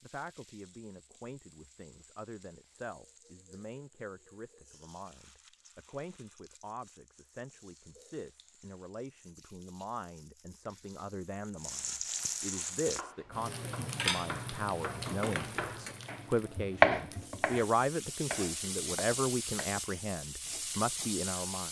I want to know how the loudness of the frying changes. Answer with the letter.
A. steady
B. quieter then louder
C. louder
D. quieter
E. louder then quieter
C.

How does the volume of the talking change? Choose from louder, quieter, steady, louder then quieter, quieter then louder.
louder.